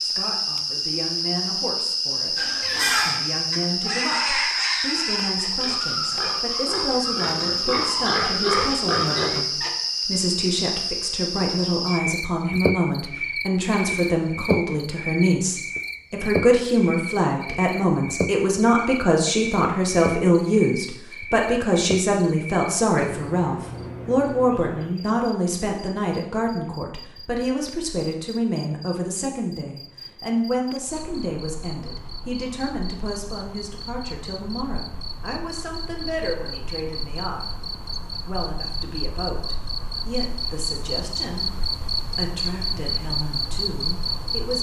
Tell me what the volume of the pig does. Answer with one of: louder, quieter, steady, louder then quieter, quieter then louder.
quieter then louder.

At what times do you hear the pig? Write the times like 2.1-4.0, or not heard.
2.4-9.7.